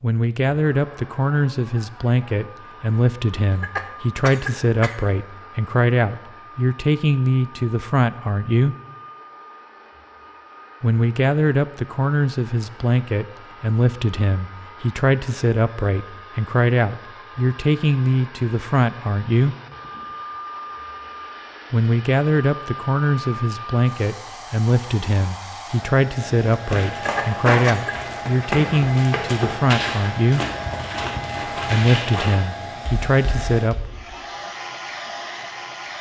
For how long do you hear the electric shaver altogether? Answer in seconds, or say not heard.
not heard.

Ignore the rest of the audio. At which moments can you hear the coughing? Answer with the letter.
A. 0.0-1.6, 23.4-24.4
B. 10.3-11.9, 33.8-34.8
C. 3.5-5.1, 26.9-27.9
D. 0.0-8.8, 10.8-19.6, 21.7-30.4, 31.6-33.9
C.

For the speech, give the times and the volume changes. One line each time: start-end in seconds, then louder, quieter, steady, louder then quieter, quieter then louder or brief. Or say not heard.
0.0-8.8 steady
10.8-19.6 steady
21.7-30.4 steady
31.6-33.9 brief.